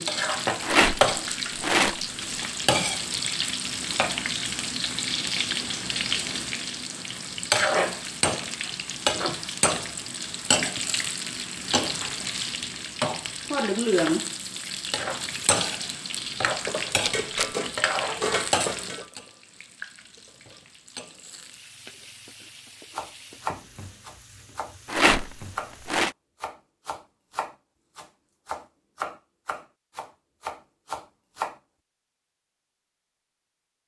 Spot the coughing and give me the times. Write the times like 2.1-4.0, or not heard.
not heard.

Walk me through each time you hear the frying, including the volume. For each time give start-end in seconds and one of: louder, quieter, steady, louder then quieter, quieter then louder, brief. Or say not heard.
0.0-25.9 quieter.